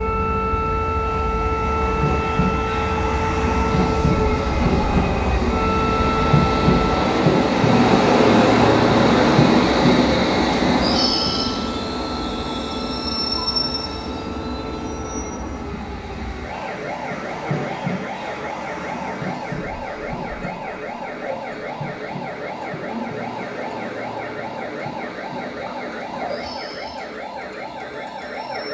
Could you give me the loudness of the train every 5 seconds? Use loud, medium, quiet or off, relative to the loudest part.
medium, loud, medium, quiet, quiet, quiet.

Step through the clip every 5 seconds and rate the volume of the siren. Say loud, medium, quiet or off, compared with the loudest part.
loud, loud, medium, medium, medium, medium.